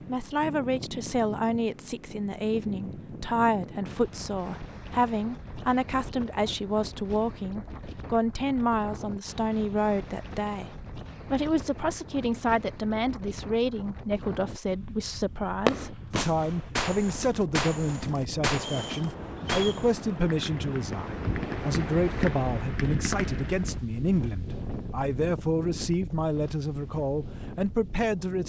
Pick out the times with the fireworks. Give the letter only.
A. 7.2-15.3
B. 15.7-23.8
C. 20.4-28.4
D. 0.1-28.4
B.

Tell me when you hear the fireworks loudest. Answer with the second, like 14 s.
16 s.